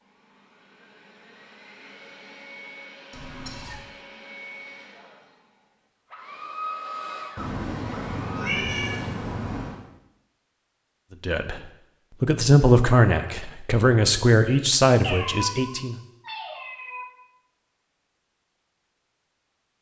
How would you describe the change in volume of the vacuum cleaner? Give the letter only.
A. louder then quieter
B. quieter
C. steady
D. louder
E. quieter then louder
D.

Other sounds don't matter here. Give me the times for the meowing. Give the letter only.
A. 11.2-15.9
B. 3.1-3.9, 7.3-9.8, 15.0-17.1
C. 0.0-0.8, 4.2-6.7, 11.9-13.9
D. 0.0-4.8
B.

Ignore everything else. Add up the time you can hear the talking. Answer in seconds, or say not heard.
5 s.